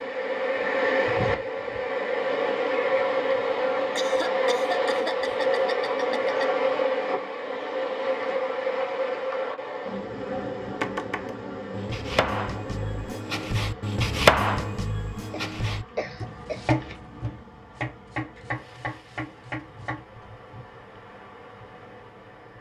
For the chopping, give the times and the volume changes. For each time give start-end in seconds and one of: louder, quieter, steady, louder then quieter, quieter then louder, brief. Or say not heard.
10.8-20.1 louder then quieter.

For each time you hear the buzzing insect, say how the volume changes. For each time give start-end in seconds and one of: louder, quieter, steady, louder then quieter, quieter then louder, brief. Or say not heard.
0.0-22.5 quieter.